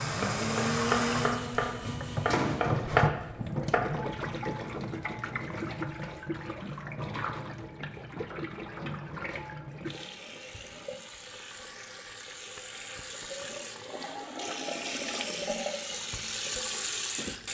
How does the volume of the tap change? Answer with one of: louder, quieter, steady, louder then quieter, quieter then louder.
quieter then louder.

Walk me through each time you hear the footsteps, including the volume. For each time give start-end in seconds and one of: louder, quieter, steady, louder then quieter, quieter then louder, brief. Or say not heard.
not heard.